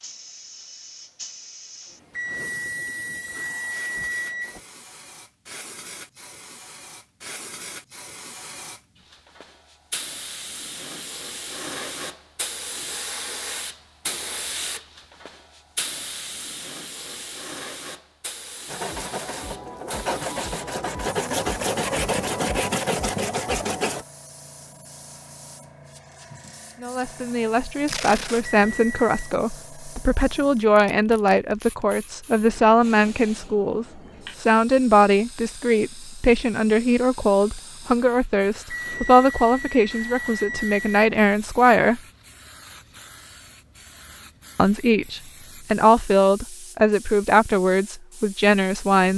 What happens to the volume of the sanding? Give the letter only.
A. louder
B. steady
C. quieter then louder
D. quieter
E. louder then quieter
A.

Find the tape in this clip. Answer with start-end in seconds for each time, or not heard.
27.9-28.4.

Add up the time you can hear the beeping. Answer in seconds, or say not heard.
6 s.